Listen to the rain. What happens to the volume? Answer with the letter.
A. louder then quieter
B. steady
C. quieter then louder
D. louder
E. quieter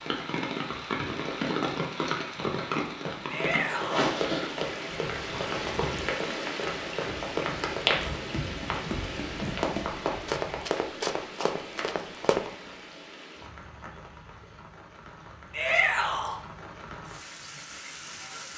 E.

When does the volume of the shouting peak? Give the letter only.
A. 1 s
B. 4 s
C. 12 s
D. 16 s
D.